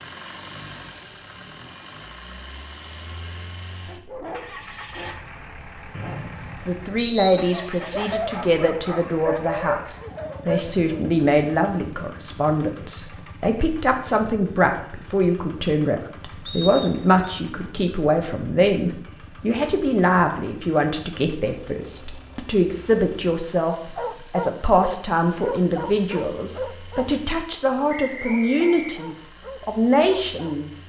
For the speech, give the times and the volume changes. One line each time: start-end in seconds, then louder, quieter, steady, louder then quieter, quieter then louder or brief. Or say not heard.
6.7-30.8 steady.